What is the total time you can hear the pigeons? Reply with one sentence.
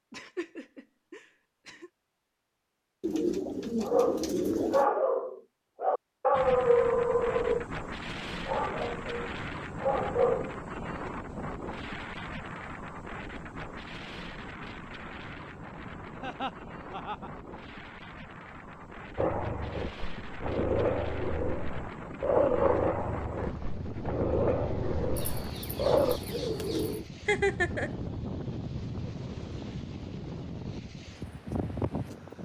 You can hear the pigeons for 4 seconds altogether.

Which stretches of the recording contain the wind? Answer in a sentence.
The wind can be heard from 6.3 to 32.4 s.